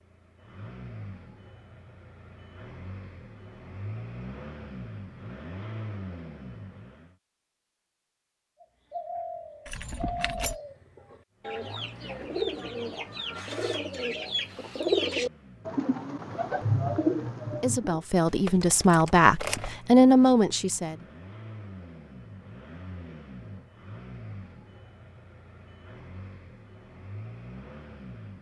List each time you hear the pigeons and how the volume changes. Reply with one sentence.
The pigeons can be heard from 8.6 to 18.0 s, getting louder.